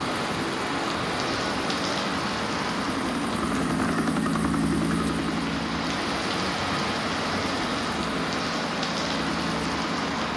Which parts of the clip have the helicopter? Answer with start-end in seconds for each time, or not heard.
0.0-10.3.